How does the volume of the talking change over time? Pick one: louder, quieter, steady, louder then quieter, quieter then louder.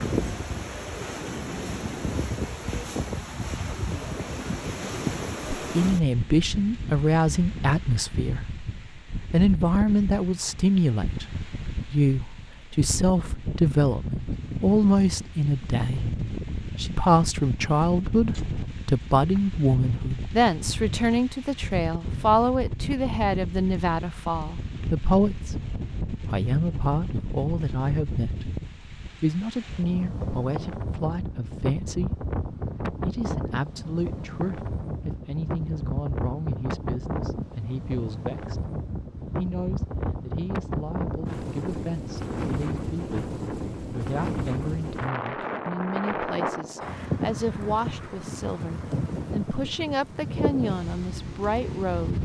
quieter.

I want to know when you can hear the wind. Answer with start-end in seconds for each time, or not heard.
0.0-52.2.